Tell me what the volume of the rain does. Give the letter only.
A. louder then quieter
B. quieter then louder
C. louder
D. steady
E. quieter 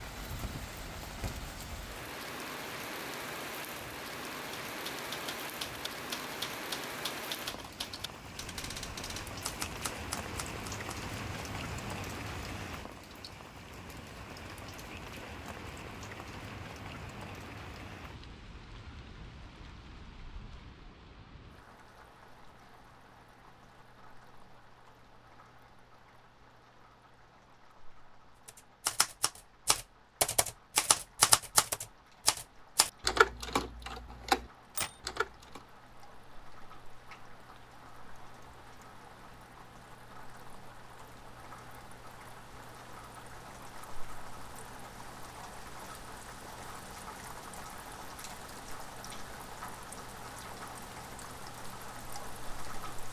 B.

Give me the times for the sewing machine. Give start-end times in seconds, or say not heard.
not heard.